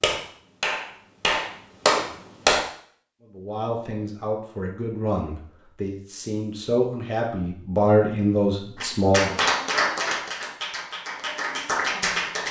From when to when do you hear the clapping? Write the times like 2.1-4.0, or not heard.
0.0-2.6, 8.8-12.4.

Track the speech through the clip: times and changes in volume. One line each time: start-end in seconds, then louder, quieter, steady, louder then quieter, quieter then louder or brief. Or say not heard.
3.3-9.3 louder.